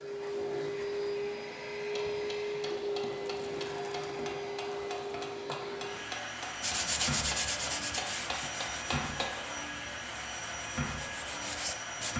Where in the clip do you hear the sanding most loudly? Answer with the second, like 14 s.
7 s.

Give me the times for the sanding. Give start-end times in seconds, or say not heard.
6.6-12.1.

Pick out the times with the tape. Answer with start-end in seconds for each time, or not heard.
not heard.